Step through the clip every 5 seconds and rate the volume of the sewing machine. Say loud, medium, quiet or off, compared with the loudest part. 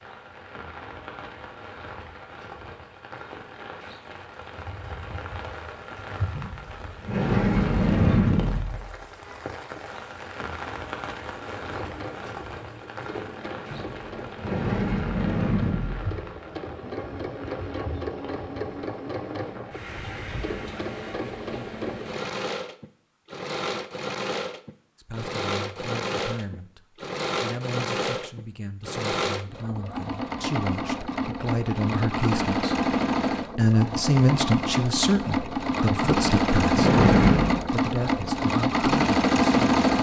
off, off, quiet, quiet, medium, medium, medium, loud.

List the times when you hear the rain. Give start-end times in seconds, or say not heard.
0.0-22.2.